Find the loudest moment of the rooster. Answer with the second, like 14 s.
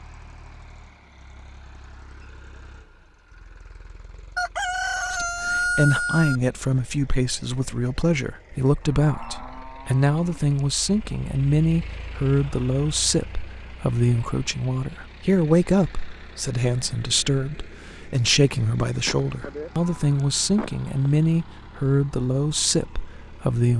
6 s.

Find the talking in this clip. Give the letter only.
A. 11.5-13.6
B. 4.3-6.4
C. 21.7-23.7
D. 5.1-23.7
D.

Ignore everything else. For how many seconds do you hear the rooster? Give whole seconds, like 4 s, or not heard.
2 s.